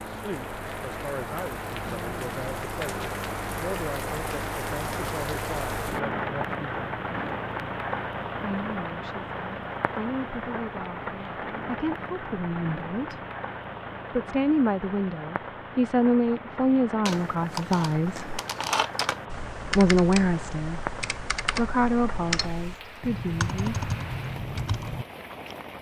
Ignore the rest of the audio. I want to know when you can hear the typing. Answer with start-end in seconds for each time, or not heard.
17.1-25.6.